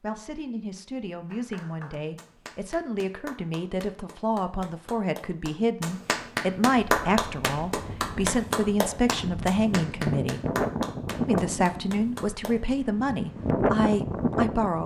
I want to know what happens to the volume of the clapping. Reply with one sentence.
The volume of the clapping goes up, then down.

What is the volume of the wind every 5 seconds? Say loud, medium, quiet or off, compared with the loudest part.
off, medium, loud.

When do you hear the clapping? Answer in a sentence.
You can hear the clapping from 1.2 to 12.6 s.